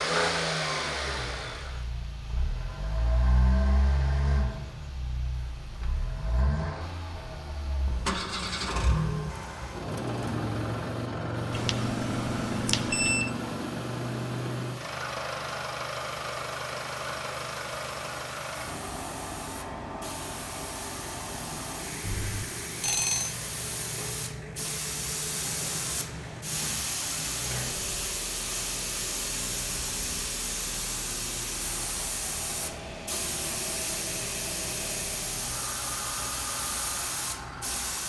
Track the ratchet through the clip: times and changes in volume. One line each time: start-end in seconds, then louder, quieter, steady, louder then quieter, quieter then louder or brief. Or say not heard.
not heard.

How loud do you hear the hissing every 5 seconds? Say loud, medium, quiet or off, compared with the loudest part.
quiet, quiet, quiet, medium, medium, loud, loud, loud.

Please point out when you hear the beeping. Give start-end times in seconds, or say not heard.
11.5-13.3, 22.0-23.4.